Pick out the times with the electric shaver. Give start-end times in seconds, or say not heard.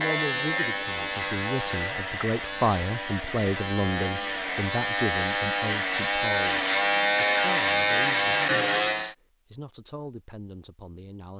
0.0-9.2.